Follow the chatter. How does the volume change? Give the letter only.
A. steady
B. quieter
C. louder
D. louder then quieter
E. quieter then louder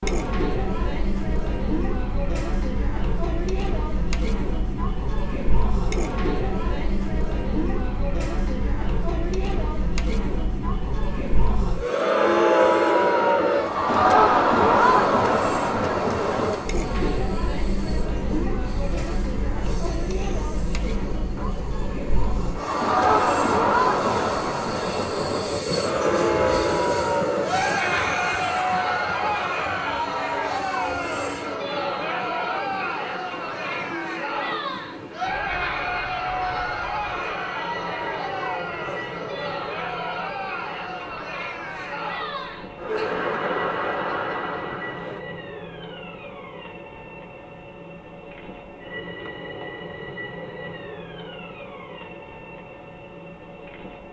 D.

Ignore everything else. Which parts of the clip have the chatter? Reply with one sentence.
You can hear the chatter from 0.0 to 45.2 s.